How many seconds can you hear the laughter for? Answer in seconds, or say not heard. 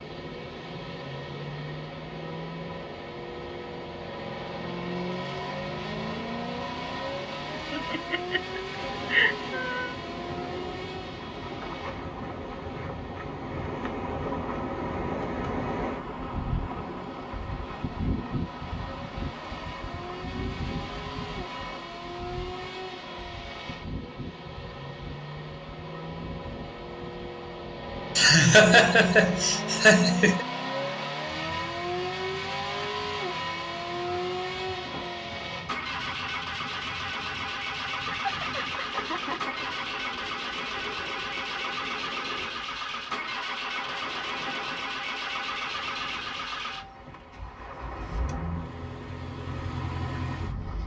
6 s.